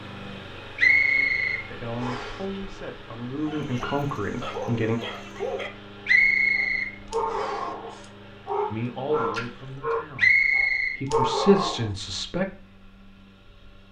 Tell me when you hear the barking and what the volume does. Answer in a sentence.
The barking can be heard from 3.5 to 11.9 s, getting louder.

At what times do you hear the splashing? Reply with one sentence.
You can hear the splashing from 9.3 to 9.8 s.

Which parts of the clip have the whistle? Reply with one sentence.
The whistle can be heard from 0.8 to 2.4 s, from 6.0 to 7.7 s and from 10.2 to 10.9 s.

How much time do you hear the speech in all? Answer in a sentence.
You can hear the speech for 7 seconds altogether.